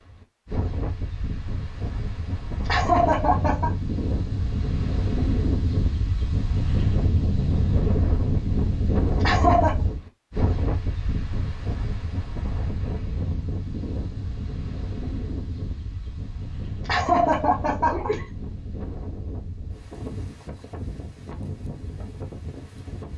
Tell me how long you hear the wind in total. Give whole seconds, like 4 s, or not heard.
23 s.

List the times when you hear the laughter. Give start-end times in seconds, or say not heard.
2.6-3.7, 9.2-9.8, 16.9-18.2.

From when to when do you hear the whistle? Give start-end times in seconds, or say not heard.
not heard.